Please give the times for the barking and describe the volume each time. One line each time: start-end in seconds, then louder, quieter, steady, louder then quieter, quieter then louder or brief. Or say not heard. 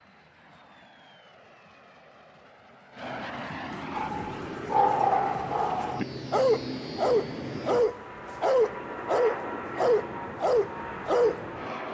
3.9-11.4 steady.